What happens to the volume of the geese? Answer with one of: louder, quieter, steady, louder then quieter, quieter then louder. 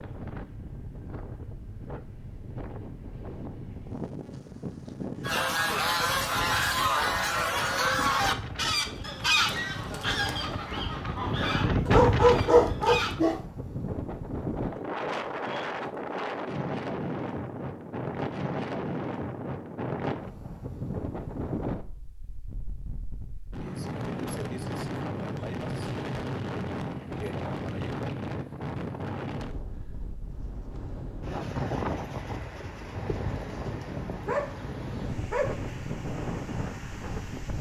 quieter.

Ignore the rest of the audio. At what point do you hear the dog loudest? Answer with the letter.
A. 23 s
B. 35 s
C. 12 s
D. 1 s
C.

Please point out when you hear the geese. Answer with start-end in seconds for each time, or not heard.
5.2-13.2.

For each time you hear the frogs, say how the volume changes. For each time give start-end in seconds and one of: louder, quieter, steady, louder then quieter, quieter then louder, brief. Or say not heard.
not heard.